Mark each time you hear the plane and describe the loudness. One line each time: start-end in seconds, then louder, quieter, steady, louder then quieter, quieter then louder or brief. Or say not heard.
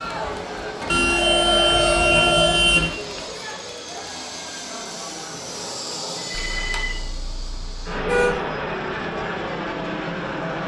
0.0-10.6 louder.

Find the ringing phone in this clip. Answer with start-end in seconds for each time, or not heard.
0.8-3.2, 6.2-7.0.